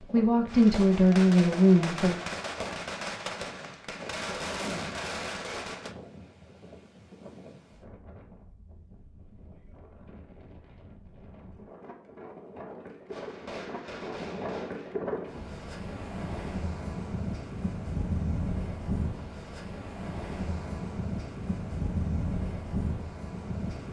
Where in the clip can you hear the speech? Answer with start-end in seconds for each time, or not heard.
0.0-2.2.